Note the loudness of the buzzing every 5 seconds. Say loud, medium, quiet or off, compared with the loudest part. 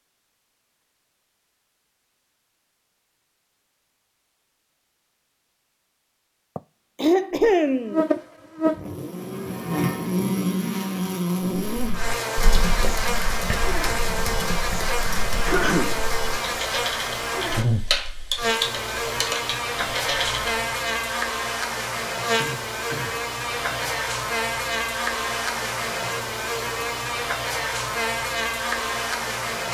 off, loud, loud, loud, loud, loud.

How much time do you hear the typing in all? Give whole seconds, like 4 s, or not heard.
9 s.